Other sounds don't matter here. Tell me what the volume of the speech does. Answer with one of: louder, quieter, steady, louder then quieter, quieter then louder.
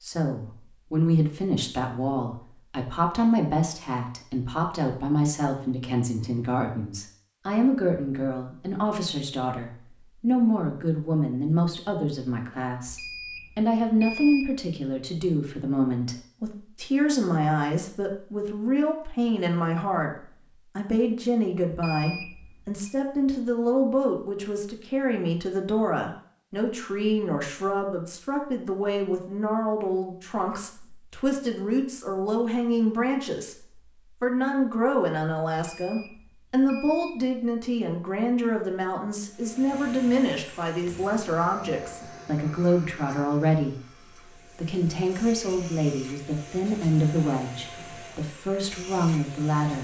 steady.